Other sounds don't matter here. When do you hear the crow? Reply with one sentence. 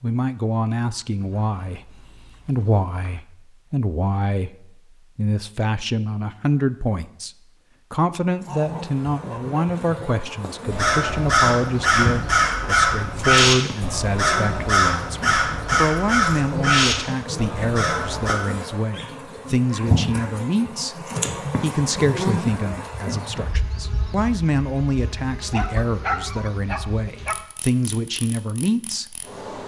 You can hear the crow from 10.7 to 18.4 s.